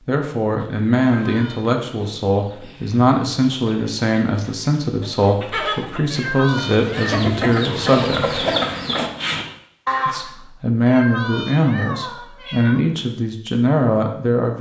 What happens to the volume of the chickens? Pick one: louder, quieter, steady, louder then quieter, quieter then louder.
louder.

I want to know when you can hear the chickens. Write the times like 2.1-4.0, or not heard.
0.6-10.3.